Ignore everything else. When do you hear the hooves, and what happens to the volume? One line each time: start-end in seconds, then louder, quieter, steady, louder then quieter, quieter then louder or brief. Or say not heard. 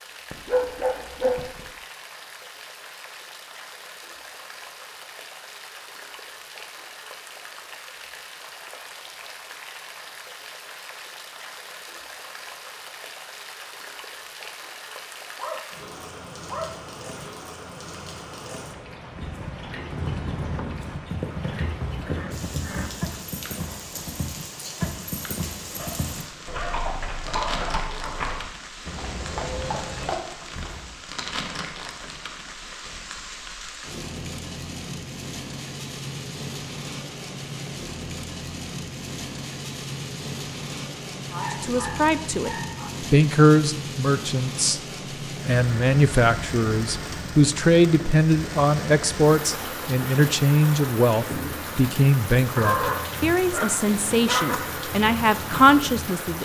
19.1-30.9 steady.